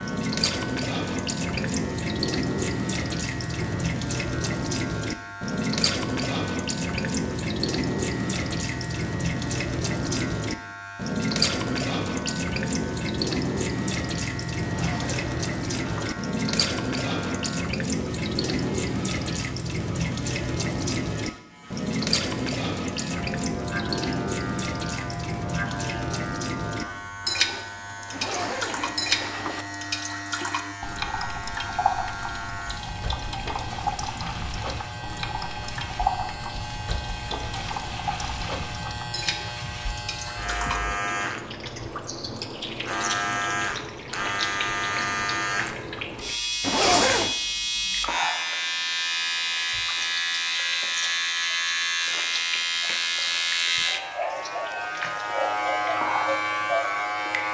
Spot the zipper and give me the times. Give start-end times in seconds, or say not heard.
14.7-16.1, 28.1-29.6, 46.6-47.4.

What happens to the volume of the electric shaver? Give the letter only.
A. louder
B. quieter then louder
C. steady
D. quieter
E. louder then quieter
A.